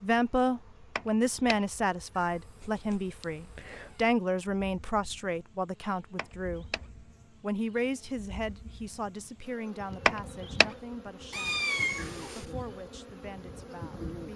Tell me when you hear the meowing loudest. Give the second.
12 s.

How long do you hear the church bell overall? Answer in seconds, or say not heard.
not heard.